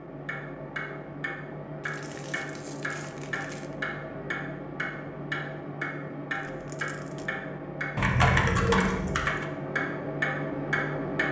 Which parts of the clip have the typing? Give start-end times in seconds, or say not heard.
8.0-9.4.